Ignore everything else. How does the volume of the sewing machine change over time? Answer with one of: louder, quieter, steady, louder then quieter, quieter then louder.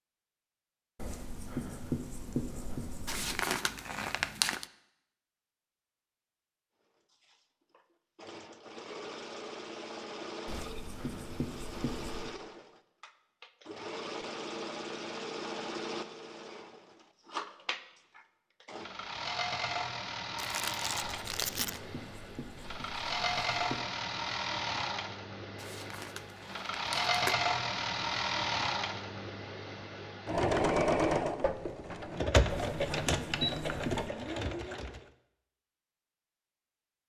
louder.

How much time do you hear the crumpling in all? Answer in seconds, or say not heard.
5 s.